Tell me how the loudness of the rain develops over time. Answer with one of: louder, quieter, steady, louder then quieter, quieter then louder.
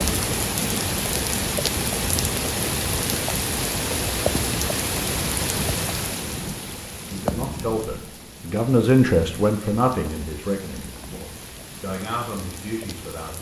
quieter.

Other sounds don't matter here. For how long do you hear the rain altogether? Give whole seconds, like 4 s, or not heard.
13 s.